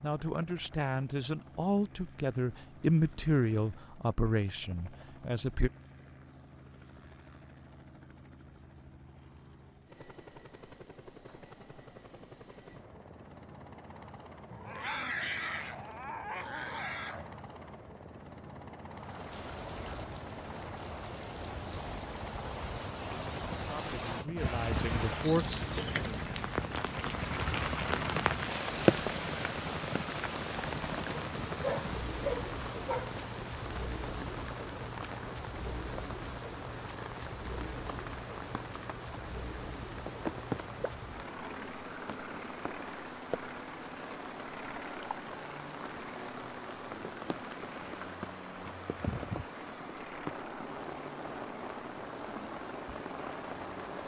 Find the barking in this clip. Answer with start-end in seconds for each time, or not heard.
14.5-17.4, 31.1-33.1.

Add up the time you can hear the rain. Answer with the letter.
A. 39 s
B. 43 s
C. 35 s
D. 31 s
C.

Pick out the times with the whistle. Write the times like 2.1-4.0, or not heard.
not heard.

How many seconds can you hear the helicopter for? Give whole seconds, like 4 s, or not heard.
54 s.